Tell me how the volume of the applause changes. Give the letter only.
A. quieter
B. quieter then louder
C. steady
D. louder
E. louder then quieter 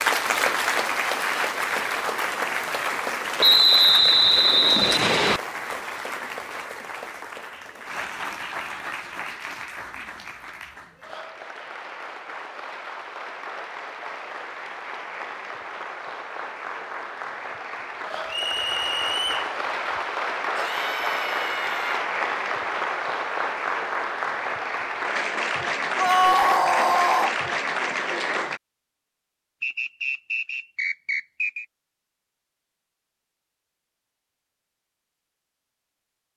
B.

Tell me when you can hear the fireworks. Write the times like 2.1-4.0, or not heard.
not heard.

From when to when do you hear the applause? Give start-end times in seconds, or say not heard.
0.0-28.6.